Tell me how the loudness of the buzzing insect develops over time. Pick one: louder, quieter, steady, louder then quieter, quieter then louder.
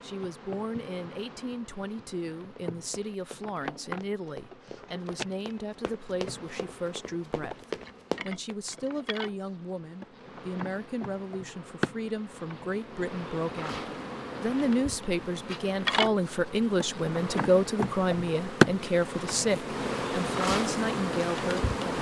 louder.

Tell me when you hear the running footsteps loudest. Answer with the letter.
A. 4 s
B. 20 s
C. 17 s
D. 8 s
D.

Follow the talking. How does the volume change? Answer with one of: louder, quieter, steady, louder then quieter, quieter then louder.
louder.